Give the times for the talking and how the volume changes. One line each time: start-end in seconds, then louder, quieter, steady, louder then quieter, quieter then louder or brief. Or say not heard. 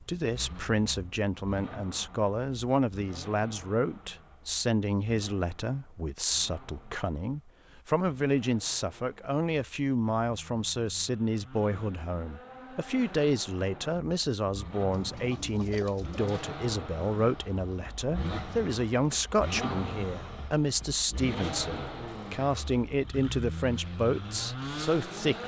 0.0-25.4 steady.